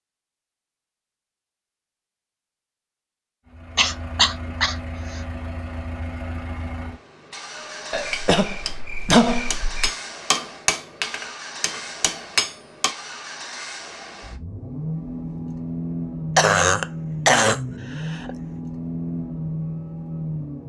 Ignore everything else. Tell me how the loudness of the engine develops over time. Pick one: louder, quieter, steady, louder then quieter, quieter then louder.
louder.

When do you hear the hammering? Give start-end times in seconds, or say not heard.
7.5-12.9.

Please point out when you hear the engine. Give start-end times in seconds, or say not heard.
3.5-20.6.